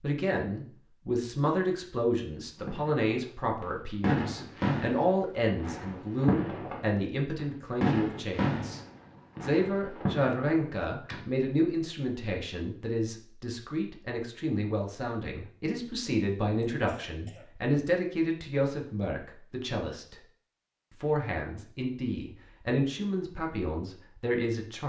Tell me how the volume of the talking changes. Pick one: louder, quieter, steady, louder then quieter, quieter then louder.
steady.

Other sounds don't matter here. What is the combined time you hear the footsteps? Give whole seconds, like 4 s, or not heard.
not heard.